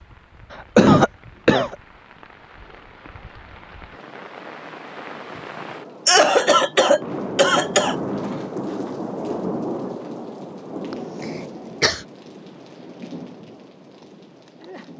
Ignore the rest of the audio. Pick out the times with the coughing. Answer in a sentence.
The coughing can be heard from 0.5 to 1.8 s, from 6.0 to 8.0 s and from 10.9 to 12.0 s.